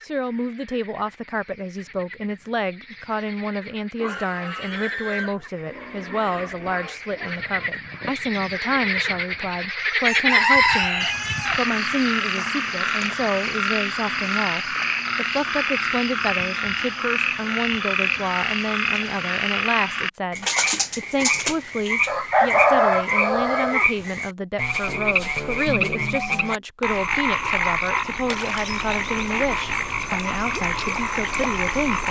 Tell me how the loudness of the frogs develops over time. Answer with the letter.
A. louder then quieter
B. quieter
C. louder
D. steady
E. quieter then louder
C.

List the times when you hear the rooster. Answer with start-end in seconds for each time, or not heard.
10.1-11.6, 22.1-23.9.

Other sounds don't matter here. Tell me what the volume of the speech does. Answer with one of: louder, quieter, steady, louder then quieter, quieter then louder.
steady.